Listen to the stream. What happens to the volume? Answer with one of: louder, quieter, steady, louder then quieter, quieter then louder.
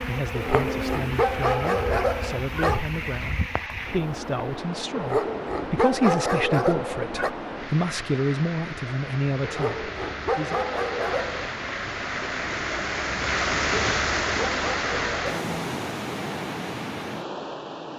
louder.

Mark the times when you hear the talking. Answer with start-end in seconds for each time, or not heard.
0.0-10.6.